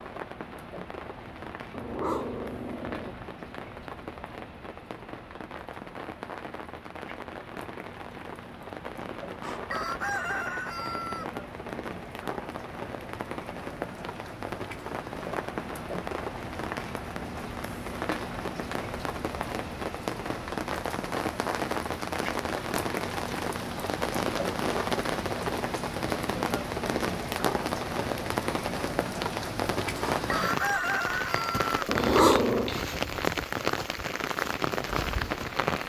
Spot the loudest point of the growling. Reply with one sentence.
The loudest moment of the growling is at 32 seconds.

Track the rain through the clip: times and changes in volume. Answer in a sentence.
You can hear the rain from 0.0 to 35.8 s, getting louder.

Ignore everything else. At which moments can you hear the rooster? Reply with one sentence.
The rooster can be heard from 9.4 to 11.3 s and from 30.1 to 31.8 s.